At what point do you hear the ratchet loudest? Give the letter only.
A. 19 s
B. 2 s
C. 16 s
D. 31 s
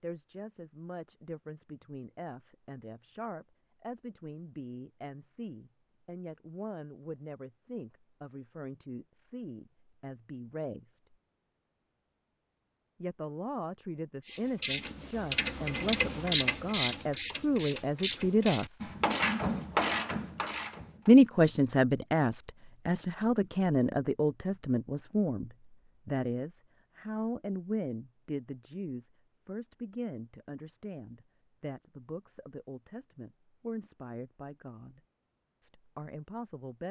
C.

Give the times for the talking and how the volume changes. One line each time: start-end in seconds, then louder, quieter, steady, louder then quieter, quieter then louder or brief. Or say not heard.
0.0-11.0 steady
13.0-18.9 louder
21.1-35.0 quieter
35.6-36.8 brief.